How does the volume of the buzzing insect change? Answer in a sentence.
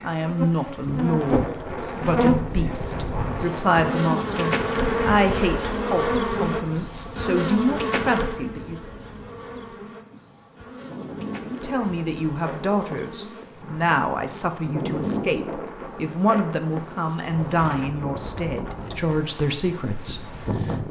The loudness of the buzzing insect goes down.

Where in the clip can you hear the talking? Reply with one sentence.
The talking can be heard from 0.0 to 8.8 s and from 11.4 to 20.8 s.